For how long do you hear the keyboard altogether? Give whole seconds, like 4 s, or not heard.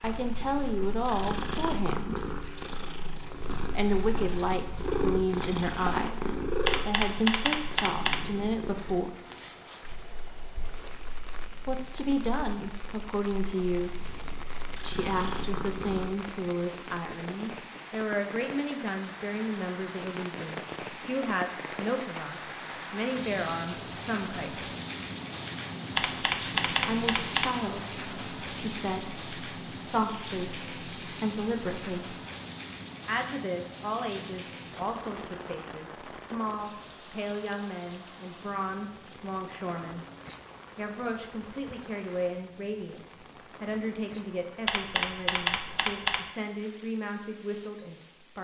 5 s.